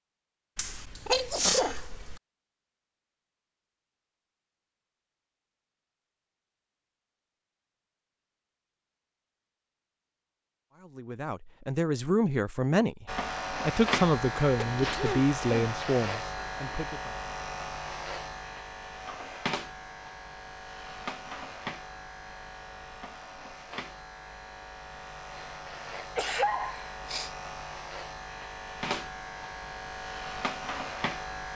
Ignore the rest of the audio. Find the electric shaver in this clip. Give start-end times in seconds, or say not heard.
13.1-31.5.